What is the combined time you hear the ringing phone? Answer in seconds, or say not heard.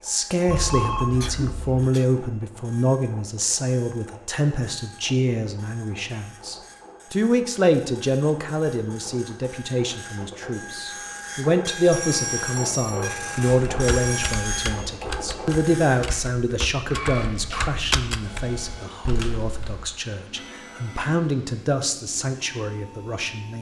4 s.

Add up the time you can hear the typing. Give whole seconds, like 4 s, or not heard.
6 s.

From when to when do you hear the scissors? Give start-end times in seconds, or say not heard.
not heard.